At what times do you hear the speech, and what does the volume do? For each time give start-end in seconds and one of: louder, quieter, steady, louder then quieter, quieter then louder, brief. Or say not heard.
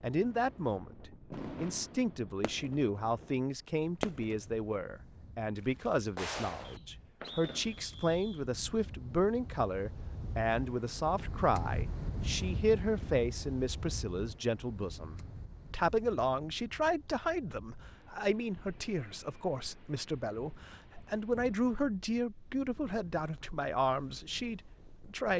0.0-25.3 steady.